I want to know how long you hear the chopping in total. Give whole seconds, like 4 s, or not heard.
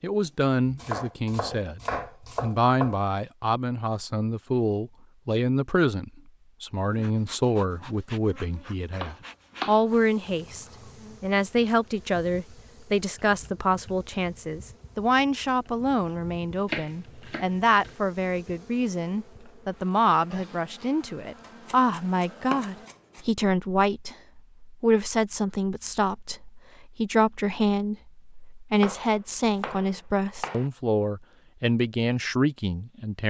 9 s.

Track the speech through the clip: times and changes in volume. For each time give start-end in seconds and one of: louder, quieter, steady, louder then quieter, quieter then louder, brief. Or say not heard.
0.0-1.8 brief
2.4-33.2 steady.